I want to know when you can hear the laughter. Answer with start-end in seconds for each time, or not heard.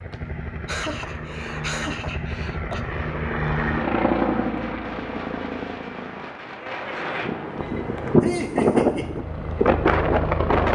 0.1-2.8, 8.2-9.2.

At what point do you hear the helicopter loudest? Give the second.
4 s.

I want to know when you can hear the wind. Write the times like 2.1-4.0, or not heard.
2.9-10.7.